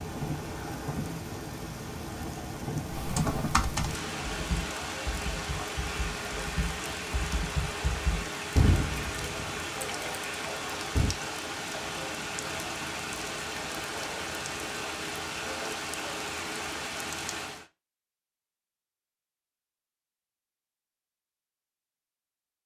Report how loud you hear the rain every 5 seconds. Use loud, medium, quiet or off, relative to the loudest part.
loud, loud, loud, loud, off.